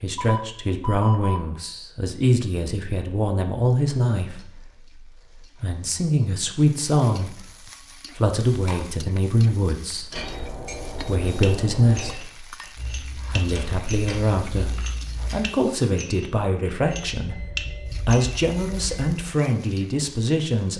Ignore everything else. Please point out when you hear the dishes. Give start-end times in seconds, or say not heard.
10.1-18.4.